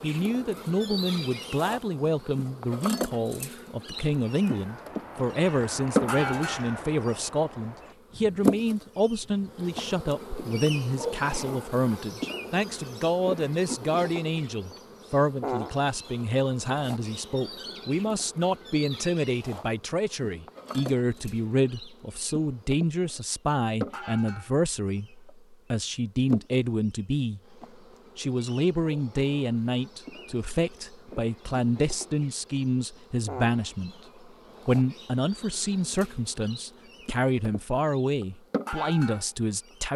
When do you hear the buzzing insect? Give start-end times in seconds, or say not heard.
0.0-39.9.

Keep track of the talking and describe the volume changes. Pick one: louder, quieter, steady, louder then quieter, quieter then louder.
steady.